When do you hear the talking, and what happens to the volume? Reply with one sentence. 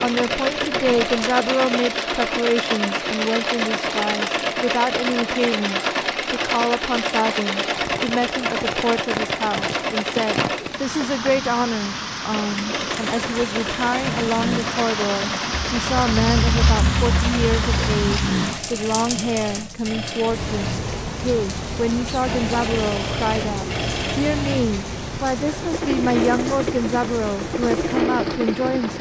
You can hear the talking from 0.0 to 28.9 s, at a steady volume.